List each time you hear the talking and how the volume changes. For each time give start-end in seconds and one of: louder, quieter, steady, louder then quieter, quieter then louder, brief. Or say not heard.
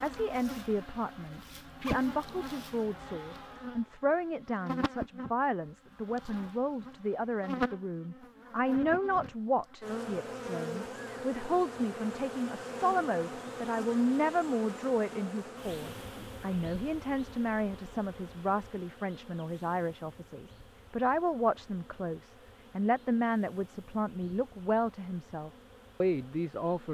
0.0-26.8 steady.